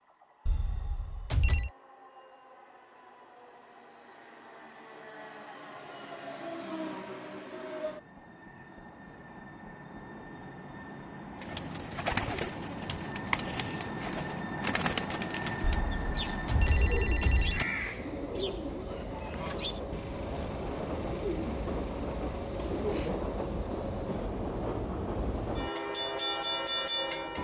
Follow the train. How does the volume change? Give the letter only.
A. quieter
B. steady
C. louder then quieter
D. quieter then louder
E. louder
E.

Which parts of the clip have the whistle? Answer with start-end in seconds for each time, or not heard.
not heard.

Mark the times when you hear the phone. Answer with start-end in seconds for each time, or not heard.
0.5-1.7, 15.6-17.6.